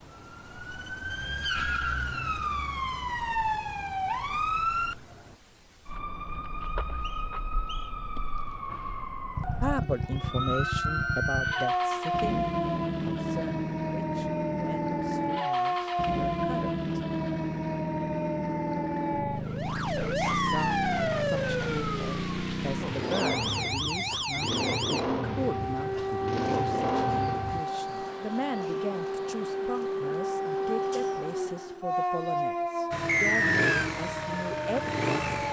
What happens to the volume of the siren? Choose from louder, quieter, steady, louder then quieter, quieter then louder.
steady.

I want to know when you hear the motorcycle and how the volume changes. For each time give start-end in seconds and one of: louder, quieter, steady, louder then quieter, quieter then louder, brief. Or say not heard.
9.3-27.6 steady
32.9-35.4 brief.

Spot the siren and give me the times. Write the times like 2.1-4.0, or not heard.
0.0-35.4.